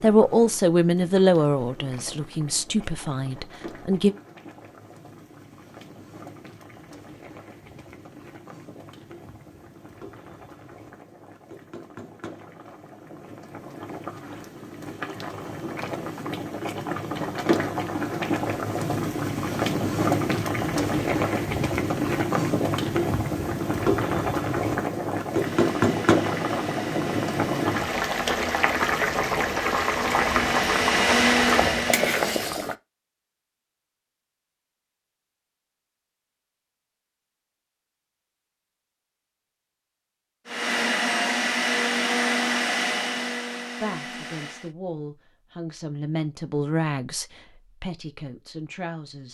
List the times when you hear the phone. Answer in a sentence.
The phone can't be heard in this clip.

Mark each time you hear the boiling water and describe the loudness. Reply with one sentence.
The boiling water can be heard from 0.0 to 32.8 s, getting louder.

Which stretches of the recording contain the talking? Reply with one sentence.
You can hear the talking from 0.0 to 4.2 s and from 43.8 to 49.2 s.